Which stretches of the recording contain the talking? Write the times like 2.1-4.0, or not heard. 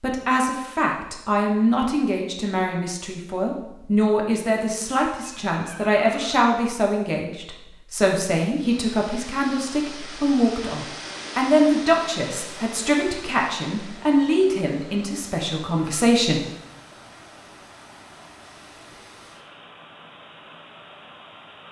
0.0-16.5.